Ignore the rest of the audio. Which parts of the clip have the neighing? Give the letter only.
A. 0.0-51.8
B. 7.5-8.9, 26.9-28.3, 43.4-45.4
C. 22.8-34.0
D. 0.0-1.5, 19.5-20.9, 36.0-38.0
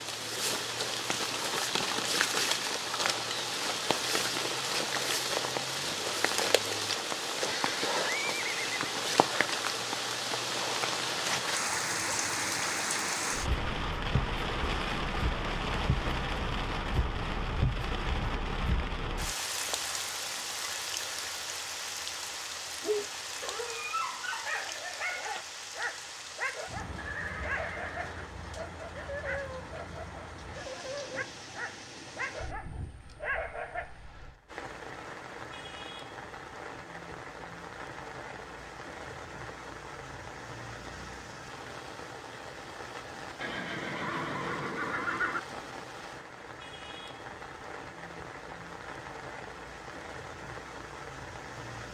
B.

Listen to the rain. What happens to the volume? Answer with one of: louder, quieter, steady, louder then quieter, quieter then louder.
quieter.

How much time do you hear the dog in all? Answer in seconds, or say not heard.
11 s.